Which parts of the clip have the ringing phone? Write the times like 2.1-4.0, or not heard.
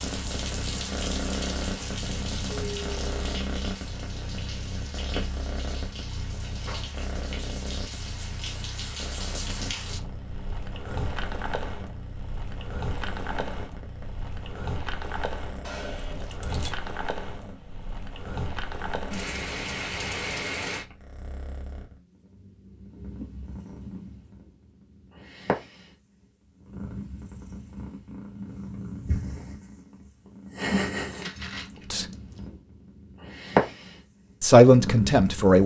not heard.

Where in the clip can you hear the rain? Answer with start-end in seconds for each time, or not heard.
0.0-20.9.